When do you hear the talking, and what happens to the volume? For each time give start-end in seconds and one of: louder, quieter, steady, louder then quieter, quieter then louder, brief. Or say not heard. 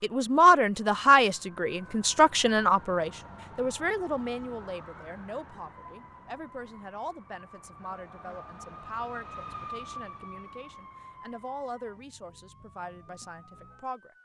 0.0-14.1 quieter.